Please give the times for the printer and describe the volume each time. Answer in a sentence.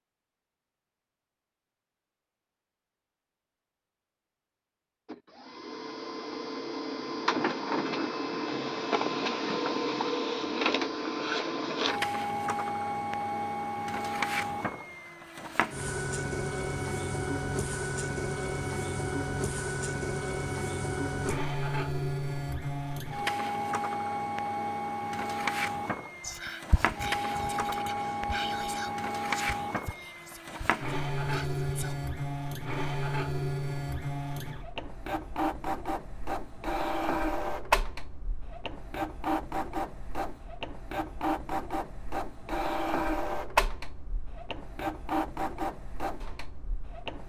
The printer can be heard from 5.0 to 47.2 s, at a steady volume.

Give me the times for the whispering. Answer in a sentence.
You can hear the whispering from 26.2 to 31.9 s.